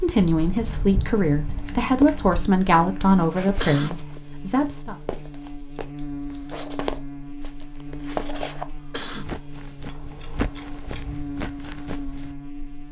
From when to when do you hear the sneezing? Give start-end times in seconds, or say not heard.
3.5-4.2, 8.8-9.4.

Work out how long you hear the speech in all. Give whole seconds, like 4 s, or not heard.
5 s.